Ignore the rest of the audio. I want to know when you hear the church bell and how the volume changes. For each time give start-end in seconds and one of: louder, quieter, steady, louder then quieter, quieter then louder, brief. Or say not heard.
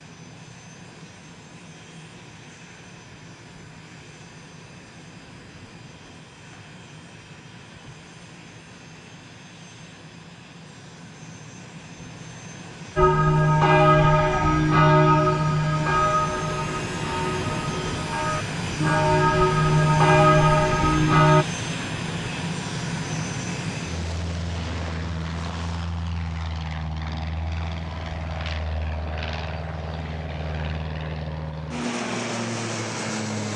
12.9-21.4 quieter then louder.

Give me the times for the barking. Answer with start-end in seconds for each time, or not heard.
not heard.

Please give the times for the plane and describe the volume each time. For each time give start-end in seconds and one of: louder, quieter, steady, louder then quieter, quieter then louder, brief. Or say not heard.
0.0-33.5 louder.